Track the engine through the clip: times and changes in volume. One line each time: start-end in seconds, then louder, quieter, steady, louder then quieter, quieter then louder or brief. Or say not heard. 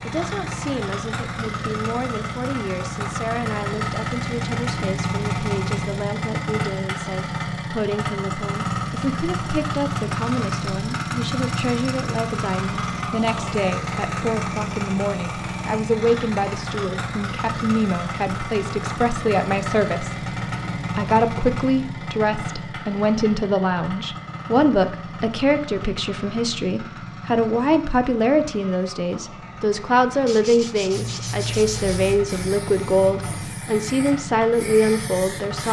0.0-35.6 quieter.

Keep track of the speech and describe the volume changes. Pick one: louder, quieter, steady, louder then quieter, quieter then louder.
louder.